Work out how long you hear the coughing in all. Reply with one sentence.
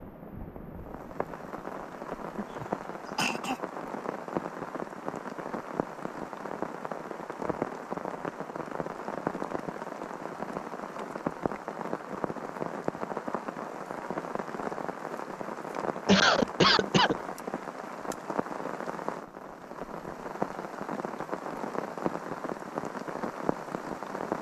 You can hear the coughing for 2 seconds altogether.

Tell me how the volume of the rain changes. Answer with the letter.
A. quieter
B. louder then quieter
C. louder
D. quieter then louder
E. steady
E.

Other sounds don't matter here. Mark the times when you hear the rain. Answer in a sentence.
You can hear the rain from 0.0 to 24.3 s.